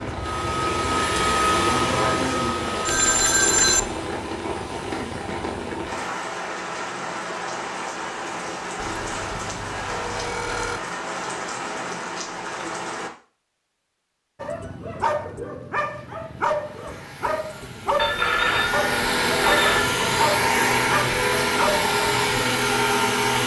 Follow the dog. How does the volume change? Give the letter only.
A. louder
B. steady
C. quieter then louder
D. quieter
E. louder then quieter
B.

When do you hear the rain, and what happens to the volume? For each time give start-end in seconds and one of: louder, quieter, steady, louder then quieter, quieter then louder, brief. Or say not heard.
0.0-13.1 steady.